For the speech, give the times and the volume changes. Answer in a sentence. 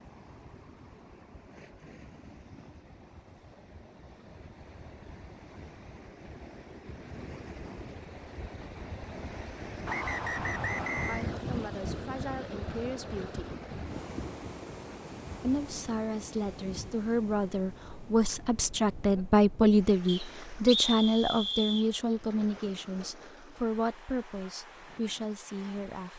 The speech can be heard briefly from 11.1 to 13.5 s; and from 15.4 to 26.1 s, getting louder then quieter.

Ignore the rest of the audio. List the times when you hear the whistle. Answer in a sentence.
The whistle can be heard from 9.8 to 11.2 s and from 20.1 to 21.9 s.